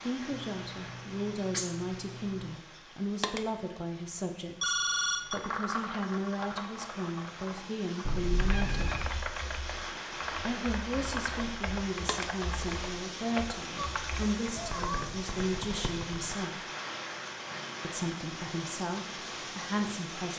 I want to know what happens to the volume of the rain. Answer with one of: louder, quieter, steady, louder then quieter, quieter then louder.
louder.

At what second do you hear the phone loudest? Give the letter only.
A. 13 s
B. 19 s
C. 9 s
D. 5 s
D.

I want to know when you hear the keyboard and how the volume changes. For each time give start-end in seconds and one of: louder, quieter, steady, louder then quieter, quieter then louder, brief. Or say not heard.
5.2-16.4 steady.